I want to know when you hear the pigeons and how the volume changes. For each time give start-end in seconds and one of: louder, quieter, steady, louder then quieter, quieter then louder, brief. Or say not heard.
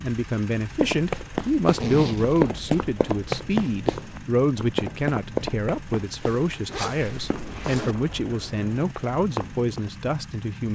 not heard.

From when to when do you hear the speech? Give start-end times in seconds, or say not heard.
0.0-10.6.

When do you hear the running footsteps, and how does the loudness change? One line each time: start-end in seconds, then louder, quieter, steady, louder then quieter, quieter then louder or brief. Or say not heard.
0.8-9.9 quieter.